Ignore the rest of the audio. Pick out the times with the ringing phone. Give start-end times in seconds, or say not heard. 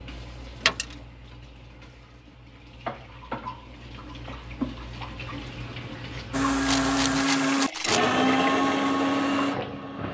not heard.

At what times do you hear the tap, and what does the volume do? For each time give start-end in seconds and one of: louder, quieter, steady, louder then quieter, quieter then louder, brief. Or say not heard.
0.0-10.0 louder.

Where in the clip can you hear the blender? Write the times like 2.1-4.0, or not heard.
6.3-10.0.